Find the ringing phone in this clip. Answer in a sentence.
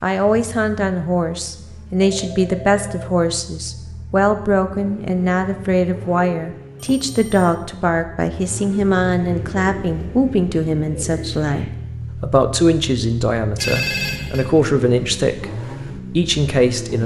You can hear the ringing phone from 2.0 to 3.1 s, from 6.9 to 7.5 s and from 13.6 to 14.4 s.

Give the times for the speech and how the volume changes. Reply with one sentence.
The speech can be heard from 0.0 to 17.0 s, at a steady volume.